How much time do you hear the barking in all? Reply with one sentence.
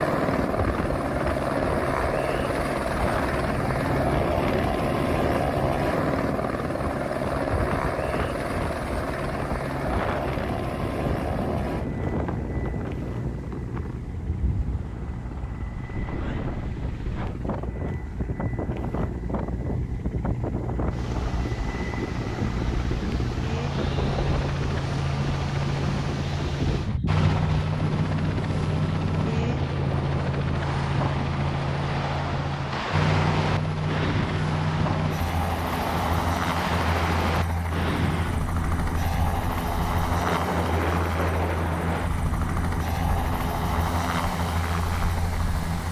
The barking can't be heard in this clip.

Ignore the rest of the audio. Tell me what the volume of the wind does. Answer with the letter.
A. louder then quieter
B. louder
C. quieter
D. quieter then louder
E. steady
E.